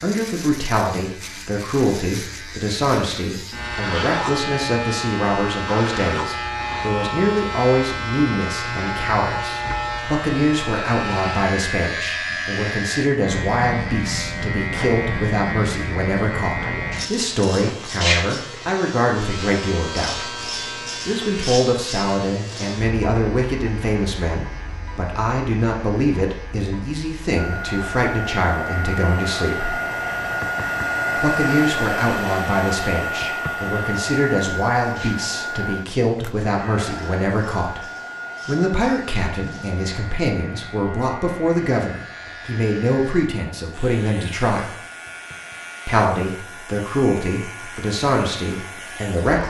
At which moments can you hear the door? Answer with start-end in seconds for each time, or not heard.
not heard.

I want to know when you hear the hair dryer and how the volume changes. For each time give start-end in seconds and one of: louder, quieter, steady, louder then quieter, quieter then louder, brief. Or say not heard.
27.4-49.1 quieter.